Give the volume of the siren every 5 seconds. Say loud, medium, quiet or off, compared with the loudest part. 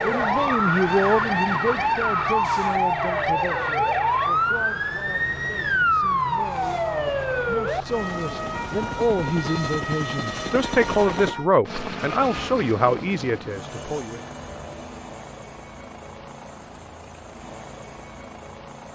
loud, loud, medium, off.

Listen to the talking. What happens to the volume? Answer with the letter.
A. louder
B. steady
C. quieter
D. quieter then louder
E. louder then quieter
D.